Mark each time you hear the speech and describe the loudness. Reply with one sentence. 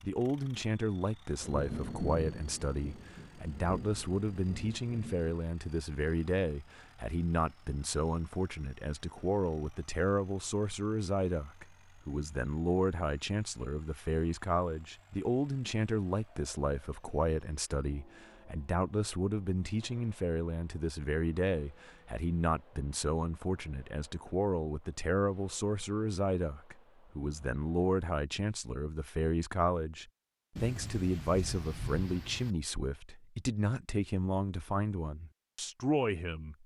You can hear the speech from 0.0 to 36.6 s, at a steady volume.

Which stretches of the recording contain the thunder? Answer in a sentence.
You can hear the thunder from 1.4 to 5.3 s and from 30.6 to 32.5 s.